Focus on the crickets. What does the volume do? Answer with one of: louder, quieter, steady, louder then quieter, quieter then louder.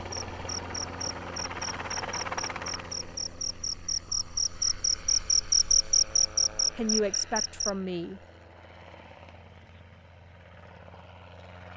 louder.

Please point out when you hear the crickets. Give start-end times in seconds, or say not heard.
0.0-7.8.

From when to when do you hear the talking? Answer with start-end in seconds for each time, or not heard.
6.8-8.2.